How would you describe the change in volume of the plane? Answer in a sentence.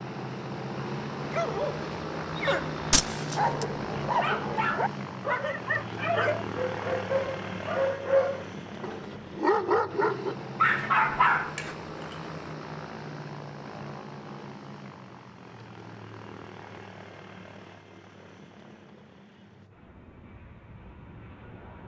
The loudness of the plane goes down.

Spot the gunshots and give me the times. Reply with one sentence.
You can hear the gunshots from 2.9 to 3.7 s.